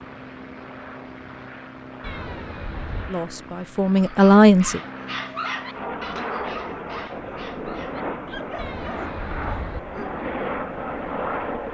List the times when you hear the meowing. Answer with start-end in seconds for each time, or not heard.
2.0-3.1, 8.6-9.8.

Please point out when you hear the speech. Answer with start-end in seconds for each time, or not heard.
3.0-4.8.